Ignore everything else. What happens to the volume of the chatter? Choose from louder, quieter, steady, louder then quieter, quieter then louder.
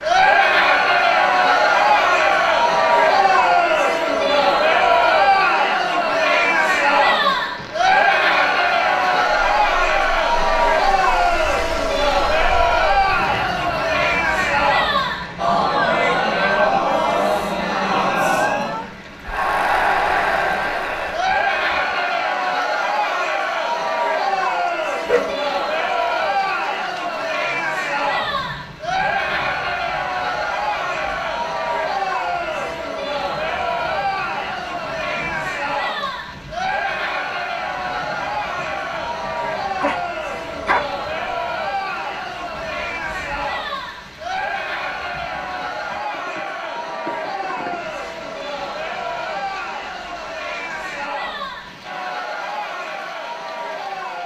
quieter.